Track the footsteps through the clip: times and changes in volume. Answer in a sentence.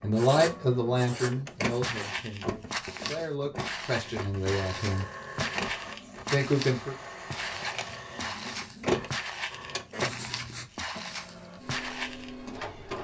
The footsteps can be heard from 1.8 to 12.3 s, at a steady volume.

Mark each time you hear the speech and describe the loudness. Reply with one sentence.
You can hear the speech from 0.0 to 5.0 s, getting quieter then louder; and briefly from 6.3 to 7.0 s.